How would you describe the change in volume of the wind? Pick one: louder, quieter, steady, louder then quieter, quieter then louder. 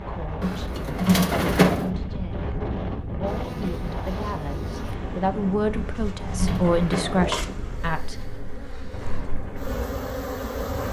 quieter.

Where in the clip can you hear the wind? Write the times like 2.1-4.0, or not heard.
0.0-10.8.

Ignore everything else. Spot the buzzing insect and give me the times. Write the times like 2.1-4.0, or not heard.
3.2-10.8.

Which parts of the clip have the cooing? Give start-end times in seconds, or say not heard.
0.4-1.9, 5.7-7.6.